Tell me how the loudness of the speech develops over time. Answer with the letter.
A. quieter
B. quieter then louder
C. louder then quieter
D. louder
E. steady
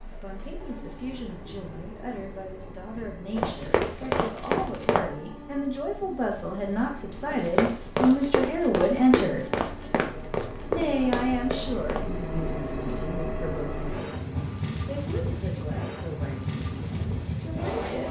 C.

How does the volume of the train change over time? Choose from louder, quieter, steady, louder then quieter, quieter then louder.
louder.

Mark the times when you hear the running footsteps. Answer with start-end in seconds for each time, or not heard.
3.4-5.0, 7.3-12.1.